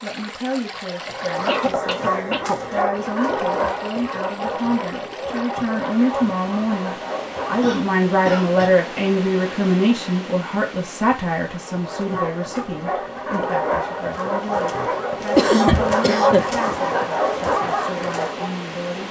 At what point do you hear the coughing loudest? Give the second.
16 s.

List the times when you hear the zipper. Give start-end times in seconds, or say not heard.
not heard.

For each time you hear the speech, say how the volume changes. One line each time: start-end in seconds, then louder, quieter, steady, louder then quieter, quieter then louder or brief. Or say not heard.
0.0-19.0 louder then quieter.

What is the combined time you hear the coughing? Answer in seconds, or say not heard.
4 s.